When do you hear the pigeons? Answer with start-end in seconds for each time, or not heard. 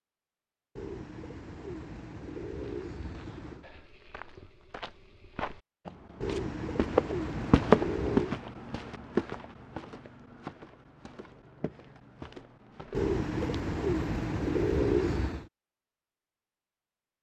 0.8-3.6, 6.2-8.4, 12.9-15.4.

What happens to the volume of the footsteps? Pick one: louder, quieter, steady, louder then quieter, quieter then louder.
louder then quieter.